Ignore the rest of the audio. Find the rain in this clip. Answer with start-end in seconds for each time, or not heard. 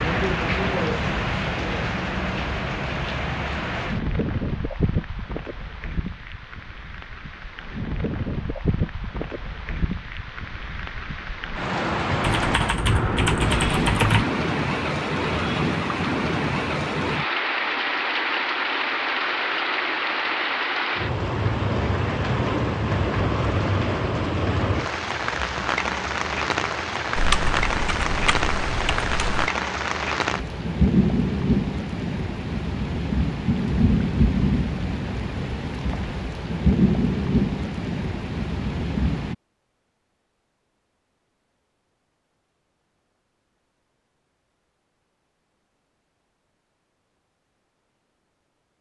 0.0-39.4.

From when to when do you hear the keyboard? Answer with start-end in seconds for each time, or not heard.
12.2-14.2, 27.1-29.5.